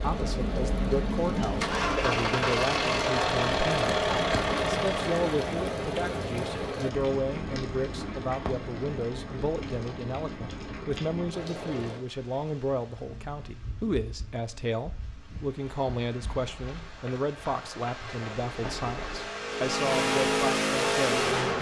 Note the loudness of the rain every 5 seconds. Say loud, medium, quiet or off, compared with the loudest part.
loud, loud, medium, medium, off.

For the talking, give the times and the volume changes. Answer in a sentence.
The talking can be heard from 0.0 to 4.0 s, at a steady volume; and from 4.7 to 21.2 s, at a steady volume.